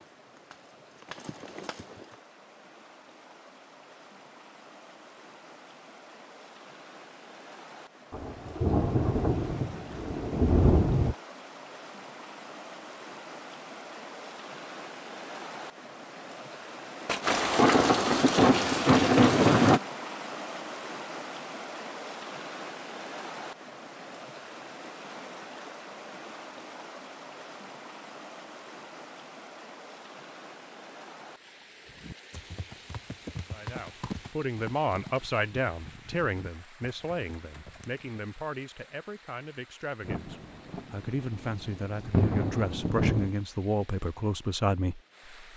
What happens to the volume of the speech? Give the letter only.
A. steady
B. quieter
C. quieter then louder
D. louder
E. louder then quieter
C.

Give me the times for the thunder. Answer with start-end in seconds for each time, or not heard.
8.1-11.2, 17.1-19.8, 40.0-43.3.